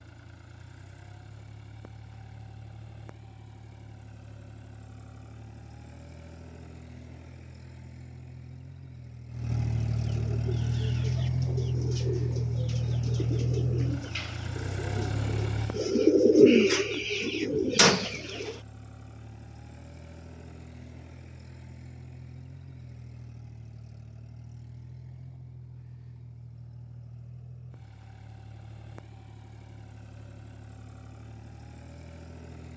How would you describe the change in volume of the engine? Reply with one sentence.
The loudness of the engine goes up, then down.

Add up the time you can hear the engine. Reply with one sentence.
You can hear the engine for 33 seconds altogether.